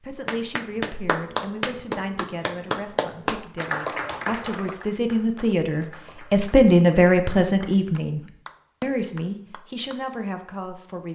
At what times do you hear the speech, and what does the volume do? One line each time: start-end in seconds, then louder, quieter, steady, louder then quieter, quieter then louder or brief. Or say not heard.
0.0-8.2 louder
8.8-11.1 brief.